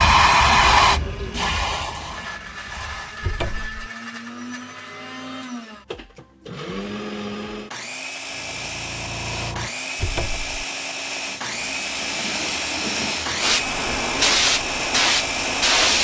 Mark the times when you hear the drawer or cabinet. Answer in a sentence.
You can hear the drawer or cabinet from 3.2 to 3.9 s and from 9.9 to 10.7 s.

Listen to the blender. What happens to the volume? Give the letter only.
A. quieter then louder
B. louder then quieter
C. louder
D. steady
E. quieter
C.